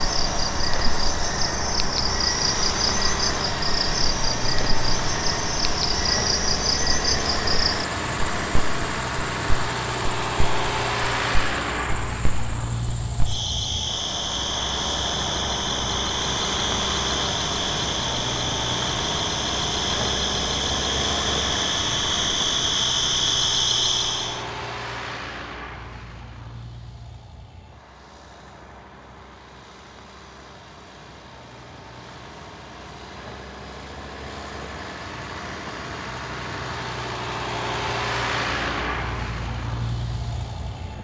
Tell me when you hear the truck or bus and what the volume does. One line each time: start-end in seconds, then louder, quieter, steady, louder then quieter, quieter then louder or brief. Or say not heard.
0.0-40.9 quieter then louder.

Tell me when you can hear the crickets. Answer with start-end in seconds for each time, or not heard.
0.0-24.4.